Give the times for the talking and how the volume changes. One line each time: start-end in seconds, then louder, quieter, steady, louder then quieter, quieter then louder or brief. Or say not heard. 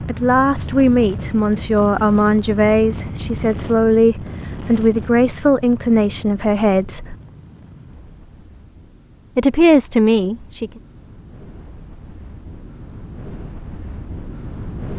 0.0-7.2 steady
9.3-10.7 brief.